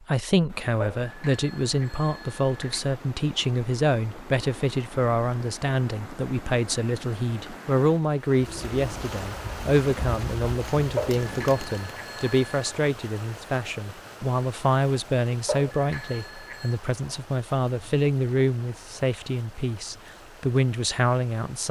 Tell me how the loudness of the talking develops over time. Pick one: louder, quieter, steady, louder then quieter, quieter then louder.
steady.